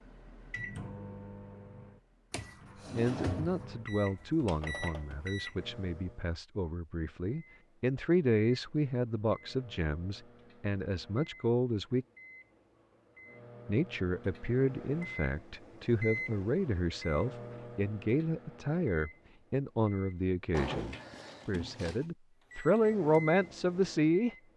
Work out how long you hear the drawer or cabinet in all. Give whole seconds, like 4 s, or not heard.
3 s.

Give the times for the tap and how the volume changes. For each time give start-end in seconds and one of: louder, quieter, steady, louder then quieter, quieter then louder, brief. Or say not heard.
not heard.